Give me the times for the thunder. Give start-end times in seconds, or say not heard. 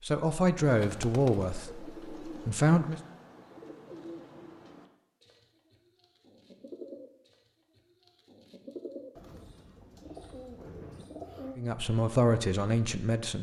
9.7-11.1.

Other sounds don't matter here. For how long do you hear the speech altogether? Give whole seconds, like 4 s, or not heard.
5 s.